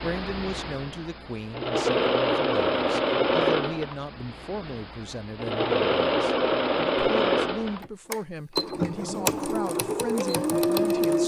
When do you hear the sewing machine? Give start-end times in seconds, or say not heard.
0.0-11.2.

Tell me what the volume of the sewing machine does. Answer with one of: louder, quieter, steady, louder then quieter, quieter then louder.
steady.